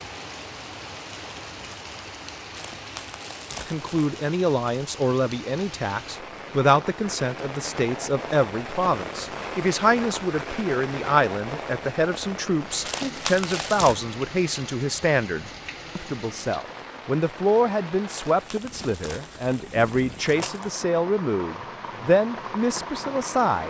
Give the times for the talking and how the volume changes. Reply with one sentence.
The talking can be heard from 3.6 to 23.6 s, at a steady volume.